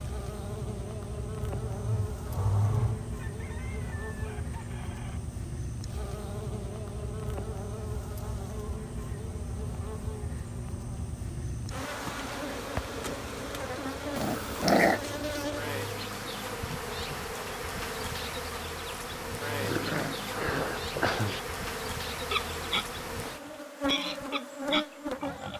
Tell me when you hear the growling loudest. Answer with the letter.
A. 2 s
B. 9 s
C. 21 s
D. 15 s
D.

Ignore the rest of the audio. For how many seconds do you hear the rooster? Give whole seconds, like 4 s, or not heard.
2 s.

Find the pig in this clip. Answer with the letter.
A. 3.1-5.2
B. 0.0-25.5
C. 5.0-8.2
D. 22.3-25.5
D.